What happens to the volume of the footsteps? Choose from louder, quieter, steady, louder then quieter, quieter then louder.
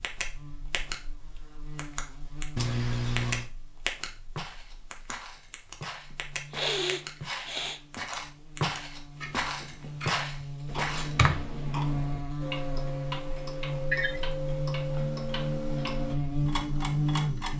louder.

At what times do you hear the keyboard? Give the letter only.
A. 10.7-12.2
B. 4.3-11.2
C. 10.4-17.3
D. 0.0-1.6
A.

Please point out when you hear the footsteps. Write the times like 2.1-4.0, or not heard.
4.3-11.2.